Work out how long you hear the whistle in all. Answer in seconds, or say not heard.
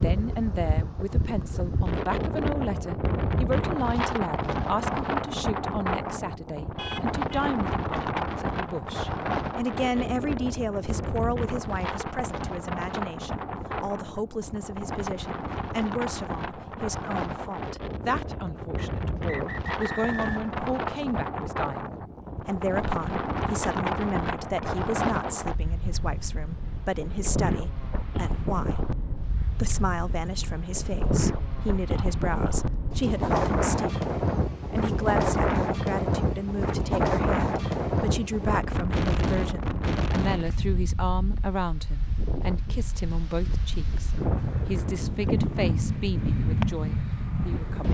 2 s.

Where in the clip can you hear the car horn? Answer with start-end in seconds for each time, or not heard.
6.8-7.5.